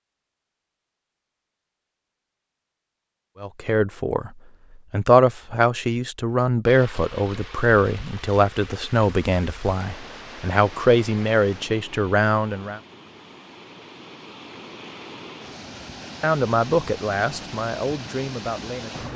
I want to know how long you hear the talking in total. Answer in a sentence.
You can hear the talking for 12 seconds altogether.